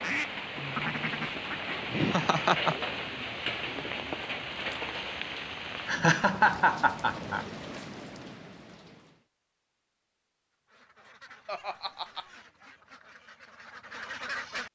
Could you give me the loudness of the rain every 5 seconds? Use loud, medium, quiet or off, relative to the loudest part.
loud, medium, off.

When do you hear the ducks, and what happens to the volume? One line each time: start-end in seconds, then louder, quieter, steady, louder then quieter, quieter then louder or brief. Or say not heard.
0.0-1.8 brief
10.7-14.7 louder.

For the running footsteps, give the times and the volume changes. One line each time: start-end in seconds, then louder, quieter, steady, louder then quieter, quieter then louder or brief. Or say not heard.
not heard.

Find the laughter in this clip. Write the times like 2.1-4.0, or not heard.
1.9-2.9, 5.8-7.5, 11.4-12.3.